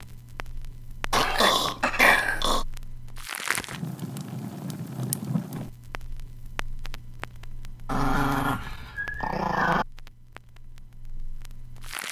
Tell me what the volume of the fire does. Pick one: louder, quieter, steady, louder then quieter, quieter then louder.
louder then quieter.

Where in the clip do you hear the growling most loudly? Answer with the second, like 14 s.
2 s.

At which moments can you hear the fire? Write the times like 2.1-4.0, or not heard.
0.0-12.0.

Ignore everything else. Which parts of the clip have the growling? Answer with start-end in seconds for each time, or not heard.
1.1-2.6, 7.8-9.8.